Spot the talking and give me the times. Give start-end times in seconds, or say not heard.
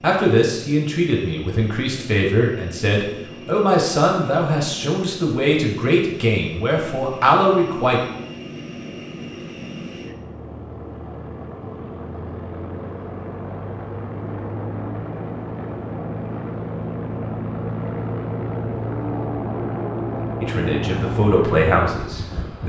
0.0-8.0, 20.4-22.6.